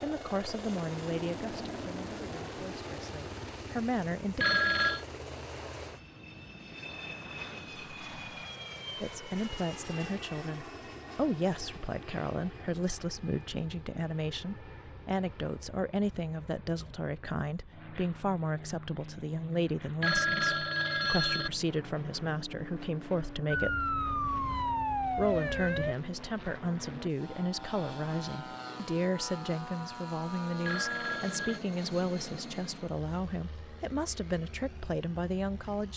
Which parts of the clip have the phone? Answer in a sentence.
You can hear the phone from 4.4 to 5.0 s, from 20.0 to 21.5 s and from 30.6 to 31.6 s.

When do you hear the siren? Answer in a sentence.
The siren can be heard from 23.5 to 25.9 s.